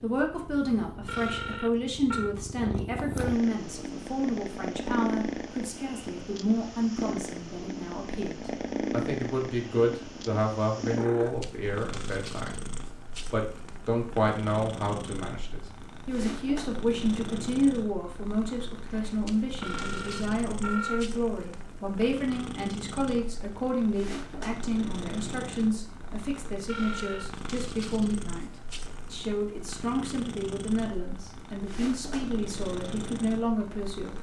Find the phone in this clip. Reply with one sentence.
The phone can be heard from 1.1 to 2.4 s, from 19.6 to 21.1 s and from 26.6 to 27.3 s.